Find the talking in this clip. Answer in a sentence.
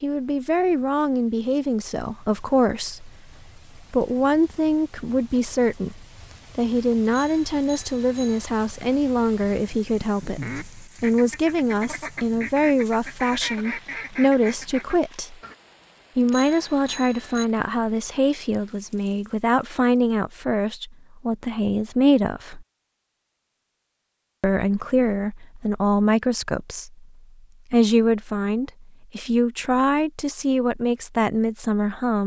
You can hear the talking from 0.0 to 15.3 s, from 16.1 to 22.6 s, from 24.4 to 27.1 s and from 27.7 to 32.2 s.